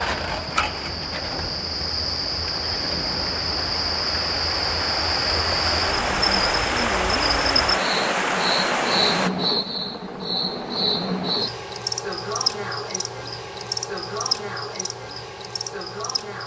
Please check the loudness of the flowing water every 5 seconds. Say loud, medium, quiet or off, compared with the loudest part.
medium, loud, off, off.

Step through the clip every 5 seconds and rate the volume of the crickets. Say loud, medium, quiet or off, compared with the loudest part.
loud, loud, loud, medium.